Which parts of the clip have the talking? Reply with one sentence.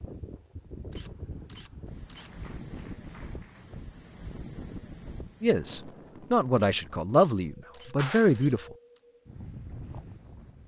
You can hear the talking from 5.4 to 8.7 s.